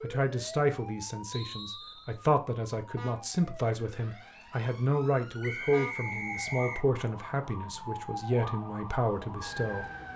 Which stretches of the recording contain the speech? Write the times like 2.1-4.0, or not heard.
0.0-9.8.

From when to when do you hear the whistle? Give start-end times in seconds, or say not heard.
1.3-2.2, 5.4-6.9.